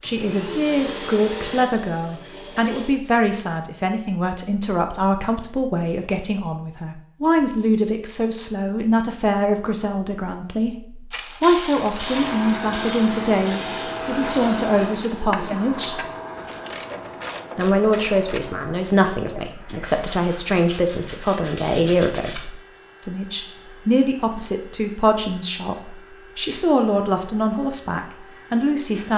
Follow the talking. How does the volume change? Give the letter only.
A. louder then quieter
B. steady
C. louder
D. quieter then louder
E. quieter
B.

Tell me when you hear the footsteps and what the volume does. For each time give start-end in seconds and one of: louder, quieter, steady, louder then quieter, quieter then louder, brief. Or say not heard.
not heard.